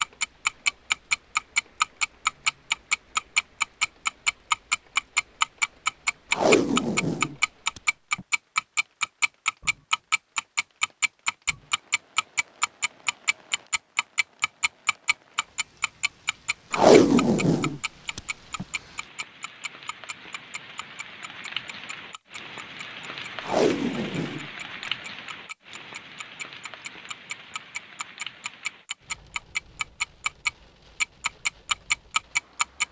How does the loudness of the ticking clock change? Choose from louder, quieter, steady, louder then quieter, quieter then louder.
quieter then louder.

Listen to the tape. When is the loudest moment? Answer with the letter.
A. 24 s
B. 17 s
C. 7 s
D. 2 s
B.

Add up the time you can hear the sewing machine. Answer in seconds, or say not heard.
not heard.